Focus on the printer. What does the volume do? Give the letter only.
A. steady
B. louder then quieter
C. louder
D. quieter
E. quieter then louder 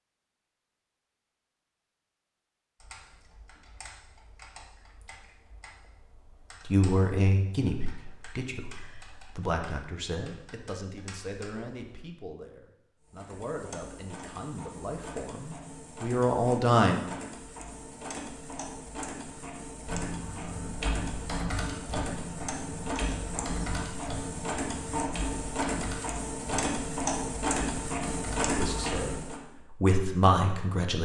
C.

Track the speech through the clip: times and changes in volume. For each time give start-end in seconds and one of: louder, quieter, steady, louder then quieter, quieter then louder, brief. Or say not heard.
6.7-17.0 quieter then louder
28.4-31.0 brief.